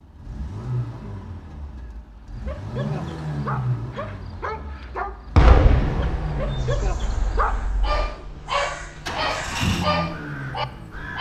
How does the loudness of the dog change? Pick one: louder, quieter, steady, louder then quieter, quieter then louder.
louder.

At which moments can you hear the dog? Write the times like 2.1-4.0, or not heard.
2.3-11.1.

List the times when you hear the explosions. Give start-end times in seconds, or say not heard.
5.3-6.8.